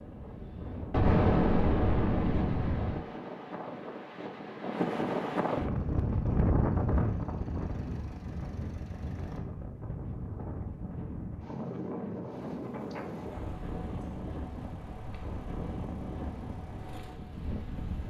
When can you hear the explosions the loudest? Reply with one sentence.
The volume of the explosions peaks at 1 second.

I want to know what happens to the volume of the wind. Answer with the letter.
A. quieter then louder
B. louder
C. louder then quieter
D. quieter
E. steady
C.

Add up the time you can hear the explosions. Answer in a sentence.
The explosions can be heard for 2 seconds in total.